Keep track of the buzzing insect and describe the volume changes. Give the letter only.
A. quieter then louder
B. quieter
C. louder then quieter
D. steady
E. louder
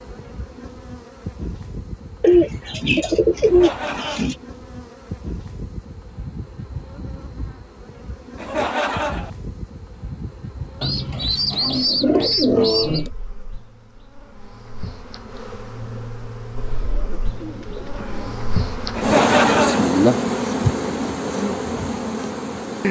E.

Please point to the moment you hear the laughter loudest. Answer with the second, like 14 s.
19 s.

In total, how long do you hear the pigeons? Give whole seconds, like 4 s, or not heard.
6 s.